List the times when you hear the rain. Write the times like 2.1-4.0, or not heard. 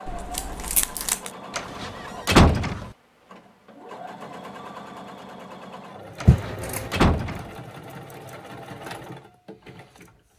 not heard.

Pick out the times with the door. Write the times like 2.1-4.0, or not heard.
1.6-2.9, 6.2-7.5.